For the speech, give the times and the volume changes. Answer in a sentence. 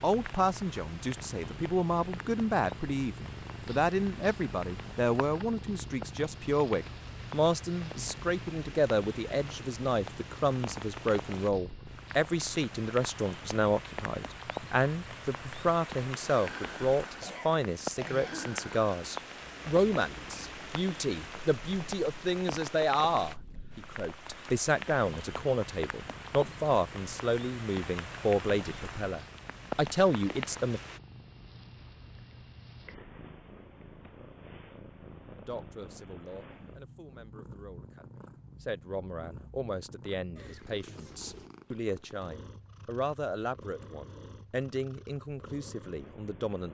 The speech can be heard from 0.0 to 30.8 s, at a steady volume; and from 35.4 to 46.6 s, getting louder.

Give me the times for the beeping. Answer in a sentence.
You can't hear the beeping here.